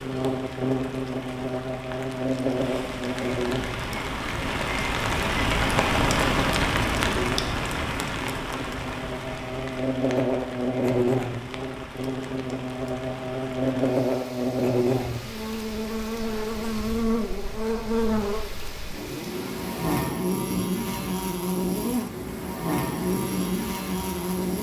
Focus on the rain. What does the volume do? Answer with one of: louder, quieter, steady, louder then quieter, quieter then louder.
louder then quieter.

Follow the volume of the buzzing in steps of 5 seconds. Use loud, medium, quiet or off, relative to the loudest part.
loud, medium, loud, loud, loud.